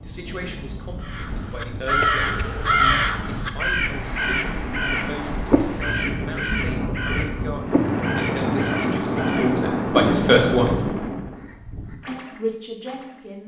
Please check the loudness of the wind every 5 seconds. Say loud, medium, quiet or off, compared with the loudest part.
medium, loud, loud.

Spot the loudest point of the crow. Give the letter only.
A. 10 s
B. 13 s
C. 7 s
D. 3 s
D.